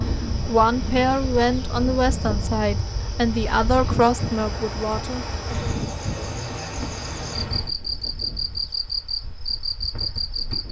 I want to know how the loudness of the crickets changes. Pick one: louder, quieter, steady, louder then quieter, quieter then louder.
louder.